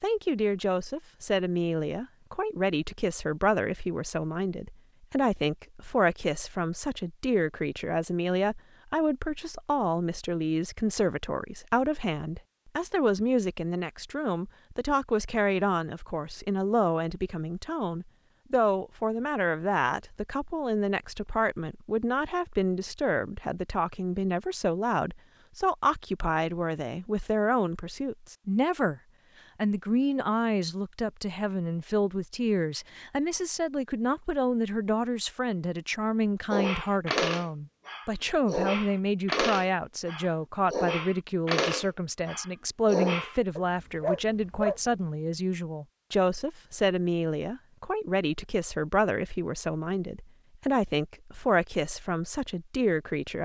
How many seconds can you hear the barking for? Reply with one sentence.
You can hear the barking for 8 seconds altogether.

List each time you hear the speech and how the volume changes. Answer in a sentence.
The speech can be heard from 0.0 to 53.4 s, at a steady volume.